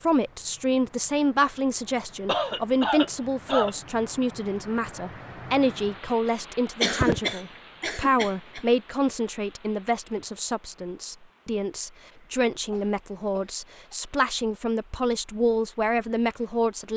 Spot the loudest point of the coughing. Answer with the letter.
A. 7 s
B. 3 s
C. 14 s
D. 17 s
A.